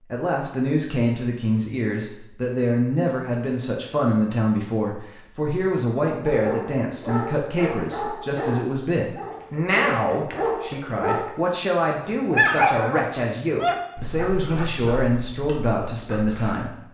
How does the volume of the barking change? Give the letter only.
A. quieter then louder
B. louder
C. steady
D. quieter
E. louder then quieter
E.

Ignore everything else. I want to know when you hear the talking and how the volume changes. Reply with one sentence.
The talking can be heard from 0.1 to 16.8 s, at a steady volume.